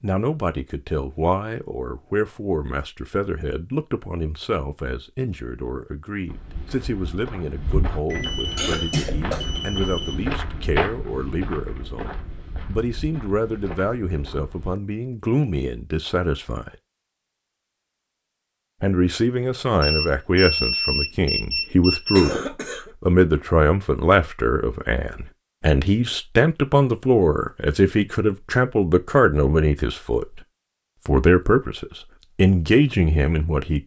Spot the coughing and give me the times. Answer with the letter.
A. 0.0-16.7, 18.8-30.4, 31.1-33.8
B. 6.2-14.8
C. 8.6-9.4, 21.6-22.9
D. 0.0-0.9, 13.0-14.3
C.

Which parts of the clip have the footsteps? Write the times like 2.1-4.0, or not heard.
6.2-14.8.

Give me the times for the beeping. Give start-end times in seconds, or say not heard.
8.0-10.2, 19.8-22.4.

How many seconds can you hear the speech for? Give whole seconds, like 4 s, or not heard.
31 s.